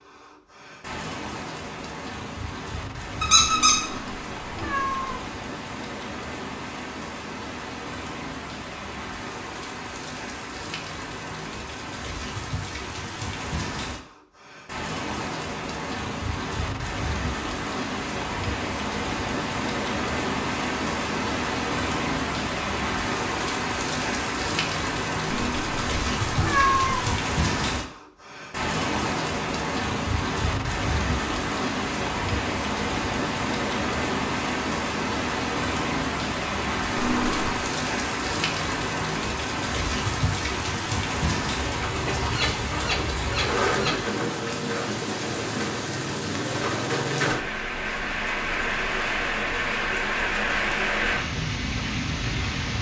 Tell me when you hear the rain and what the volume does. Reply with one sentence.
You can hear the rain from 0.0 to 52.7 s, getting louder.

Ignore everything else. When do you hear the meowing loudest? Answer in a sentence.
The volume of the meowing peaks at 27 seconds.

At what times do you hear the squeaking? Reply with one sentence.
You can hear the squeaking from 3.2 to 3.9 s and from 42.2 to 44.0 s.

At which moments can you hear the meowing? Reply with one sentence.
You can hear the meowing from 3.5 to 5.2 s, from 25.3 to 27.1 s and from 37.0 to 37.6 s.